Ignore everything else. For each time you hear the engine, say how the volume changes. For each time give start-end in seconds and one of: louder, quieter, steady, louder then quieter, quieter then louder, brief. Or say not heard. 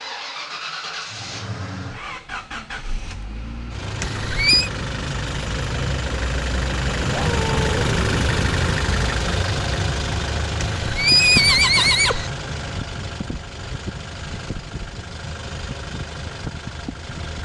0.0-17.4 louder then quieter.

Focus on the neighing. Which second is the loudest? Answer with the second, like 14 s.
11 s.